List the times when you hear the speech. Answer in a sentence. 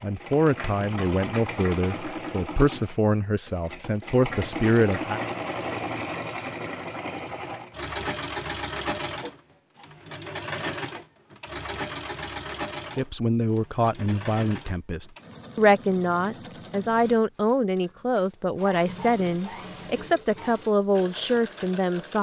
The speech can be heard from 0.0 to 5.2 s and from 12.9 to 22.1 s.